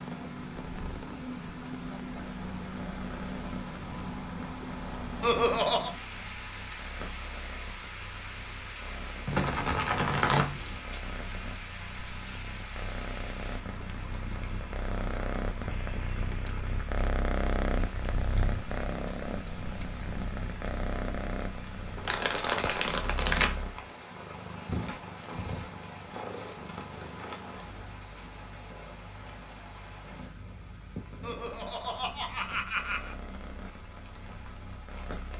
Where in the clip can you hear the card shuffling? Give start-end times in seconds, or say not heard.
9.2-10.8, 21.9-23.6.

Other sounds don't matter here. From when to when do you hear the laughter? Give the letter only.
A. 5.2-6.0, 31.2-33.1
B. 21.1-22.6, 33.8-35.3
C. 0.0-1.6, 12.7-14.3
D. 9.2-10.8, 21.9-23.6
A.